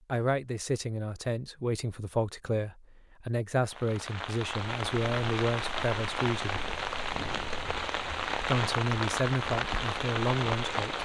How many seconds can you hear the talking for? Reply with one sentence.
You can hear the talking for 9 seconds altogether.